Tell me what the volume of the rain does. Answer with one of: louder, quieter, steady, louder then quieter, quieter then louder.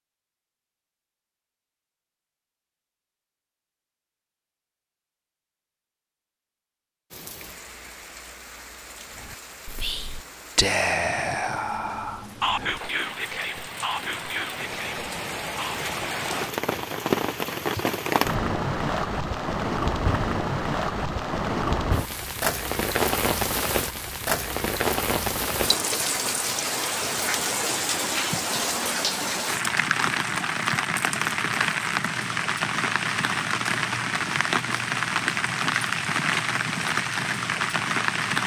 louder.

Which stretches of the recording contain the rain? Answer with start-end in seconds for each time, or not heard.
7.1-38.4.